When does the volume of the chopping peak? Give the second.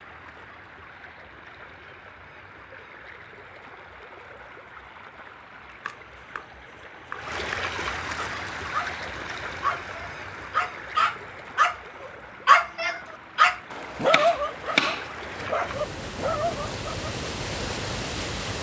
15 s.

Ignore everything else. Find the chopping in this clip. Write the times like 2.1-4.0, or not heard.
5.8-7.7, 13.7-15.4.